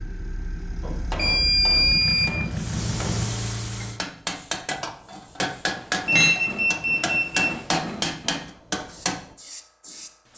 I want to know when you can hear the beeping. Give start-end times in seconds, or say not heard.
1.1-2.3, 6.0-7.5.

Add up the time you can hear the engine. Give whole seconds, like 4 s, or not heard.
3 s.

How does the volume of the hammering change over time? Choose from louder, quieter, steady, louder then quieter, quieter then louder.
louder.